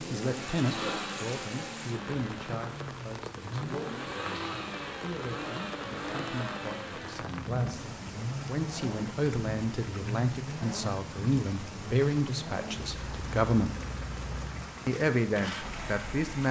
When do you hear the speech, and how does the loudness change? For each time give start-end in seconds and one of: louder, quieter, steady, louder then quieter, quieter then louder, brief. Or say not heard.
0.1-13.8 quieter then louder
14.8-16.4 brief.